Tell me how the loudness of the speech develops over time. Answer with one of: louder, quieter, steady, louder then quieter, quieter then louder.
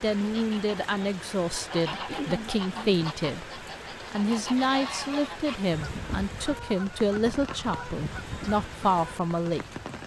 steady.